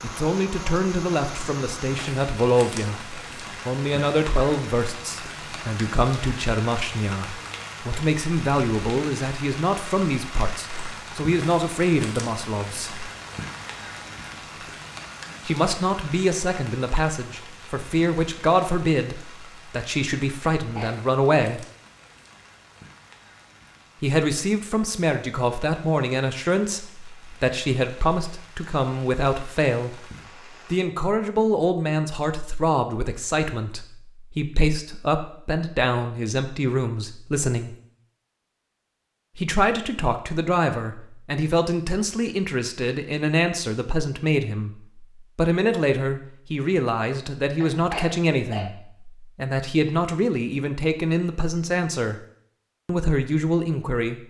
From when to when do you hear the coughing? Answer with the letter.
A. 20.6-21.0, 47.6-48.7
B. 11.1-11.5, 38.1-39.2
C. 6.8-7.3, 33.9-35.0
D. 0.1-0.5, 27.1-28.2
A.